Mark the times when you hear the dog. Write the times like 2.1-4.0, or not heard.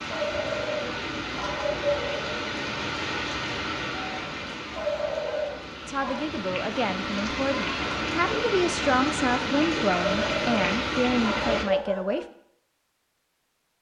0.1-2.5, 4.8-6.2, 10.1-12.2.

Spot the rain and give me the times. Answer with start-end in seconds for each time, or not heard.
0.0-11.7.